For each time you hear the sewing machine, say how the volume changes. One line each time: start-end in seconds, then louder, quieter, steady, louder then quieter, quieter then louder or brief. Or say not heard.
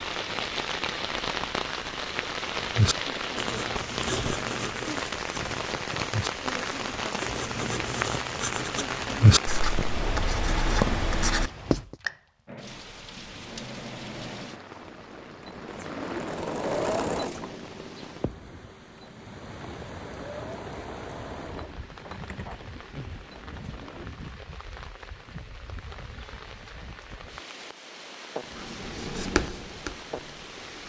12.4-24.1 louder then quieter.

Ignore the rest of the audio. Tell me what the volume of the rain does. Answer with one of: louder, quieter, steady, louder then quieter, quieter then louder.
quieter.